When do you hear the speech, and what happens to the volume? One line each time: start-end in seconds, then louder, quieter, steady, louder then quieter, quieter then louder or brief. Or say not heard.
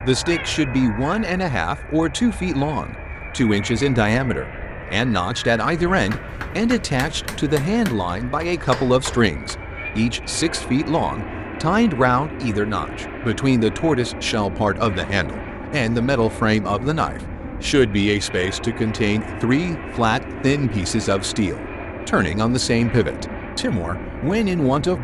0.0-24.9 steady.